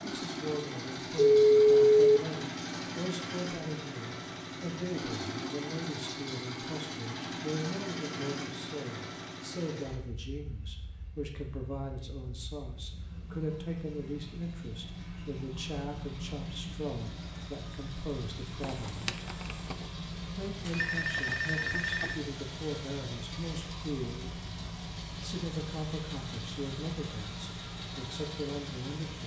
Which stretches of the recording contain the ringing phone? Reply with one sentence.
You can hear the ringing phone from 1.4 to 2.2 s and from 20.6 to 22.2 s.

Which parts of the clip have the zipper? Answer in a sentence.
You can't hear the zipper here.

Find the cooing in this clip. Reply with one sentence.
You can't hear the cooing here.